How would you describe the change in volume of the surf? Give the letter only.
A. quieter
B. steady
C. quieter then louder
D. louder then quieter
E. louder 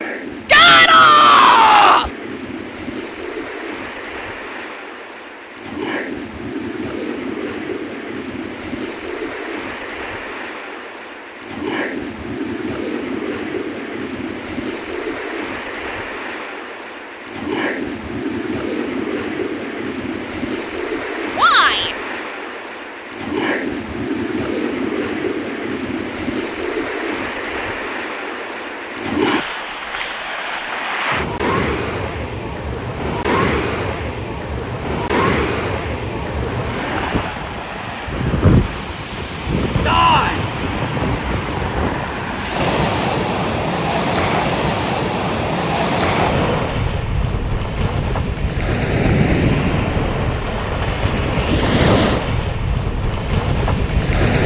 E.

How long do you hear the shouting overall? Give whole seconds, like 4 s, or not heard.
3 s.